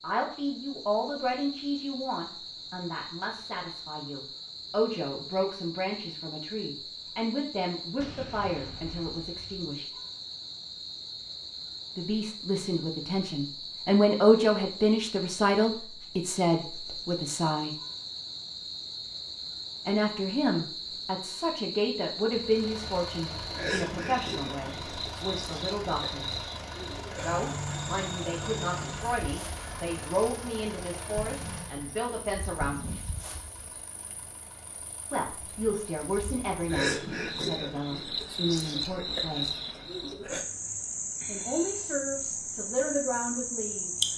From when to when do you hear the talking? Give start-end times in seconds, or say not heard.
0.0-9.9, 11.9-17.7, 19.9-26.2, 27.2-33.0, 35.1-39.5, 41.2-44.1.